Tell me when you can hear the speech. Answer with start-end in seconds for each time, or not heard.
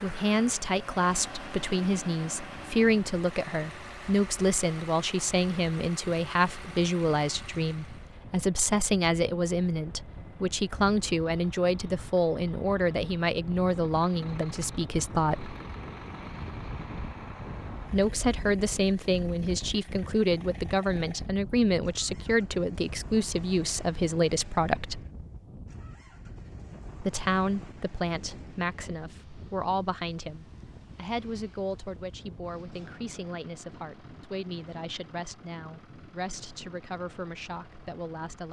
0.0-15.6, 17.9-25.0, 27.0-38.4.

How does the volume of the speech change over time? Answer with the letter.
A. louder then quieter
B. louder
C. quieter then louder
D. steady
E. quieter
E.